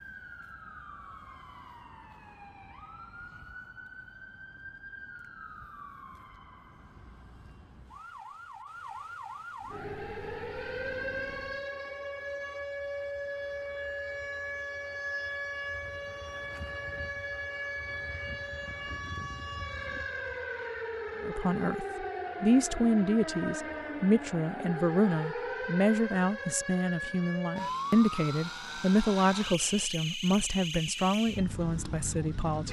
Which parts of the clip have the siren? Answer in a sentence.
The siren can be heard from 0.0 to 32.6 s.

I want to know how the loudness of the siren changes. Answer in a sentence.
The loudness of the siren goes up.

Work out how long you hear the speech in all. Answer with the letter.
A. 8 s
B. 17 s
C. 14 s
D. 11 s
D.